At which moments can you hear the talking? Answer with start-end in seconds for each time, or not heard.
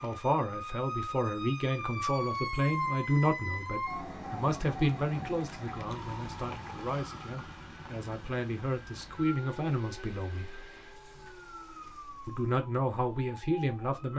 0.0-10.7, 12.2-14.1.